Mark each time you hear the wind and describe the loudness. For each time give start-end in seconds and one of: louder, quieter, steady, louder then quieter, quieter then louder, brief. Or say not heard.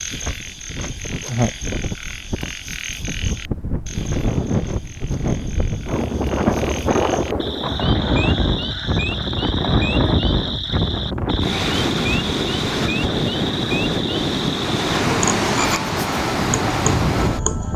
0.0-17.7 louder.